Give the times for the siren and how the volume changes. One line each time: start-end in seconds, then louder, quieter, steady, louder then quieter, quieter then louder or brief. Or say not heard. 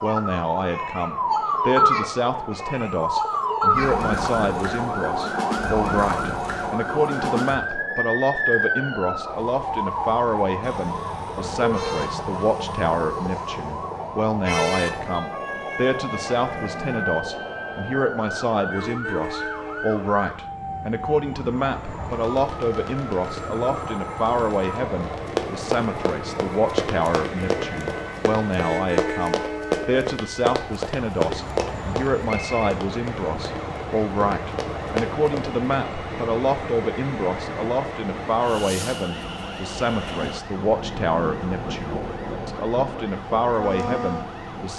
0.0-44.7 quieter.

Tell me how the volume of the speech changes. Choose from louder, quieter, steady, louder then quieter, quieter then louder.
steady.